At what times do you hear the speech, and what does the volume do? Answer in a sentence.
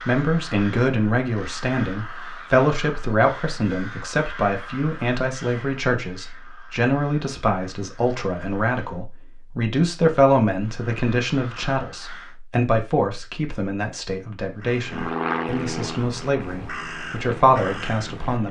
The speech can be heard from 0.1 to 18.4 s, at a steady volume.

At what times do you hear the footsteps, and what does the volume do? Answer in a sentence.
You can't hear the footsteps here.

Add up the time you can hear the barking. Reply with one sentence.
The barking can't be heard in this clip.